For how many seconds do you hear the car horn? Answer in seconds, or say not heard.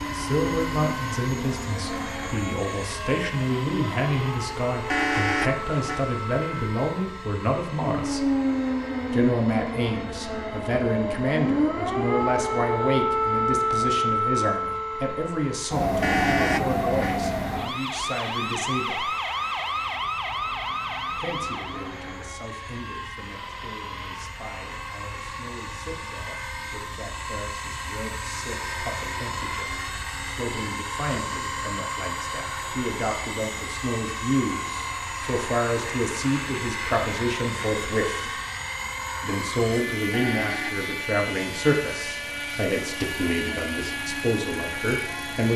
3 s.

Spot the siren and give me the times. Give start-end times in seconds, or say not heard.
0.0-21.9.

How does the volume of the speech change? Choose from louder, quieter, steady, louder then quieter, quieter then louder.
quieter then louder.